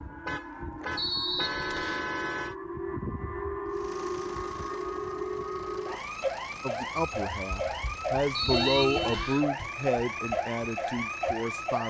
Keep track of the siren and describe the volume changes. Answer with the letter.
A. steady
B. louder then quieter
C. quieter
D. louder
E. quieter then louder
D.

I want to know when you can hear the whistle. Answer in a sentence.
The whistle can be heard from 0.9 to 2.1 s and from 8.3 to 9.4 s.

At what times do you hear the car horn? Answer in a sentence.
The car horn can be heard from 0.2 to 2.5 s and from 8.4 to 9.3 s.